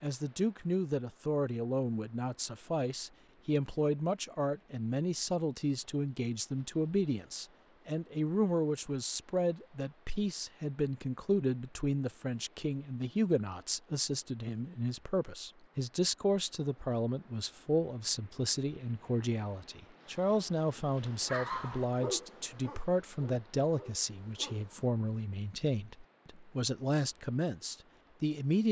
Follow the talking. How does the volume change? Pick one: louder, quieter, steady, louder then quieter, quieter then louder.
steady.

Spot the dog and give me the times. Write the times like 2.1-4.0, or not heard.
21.2-24.9.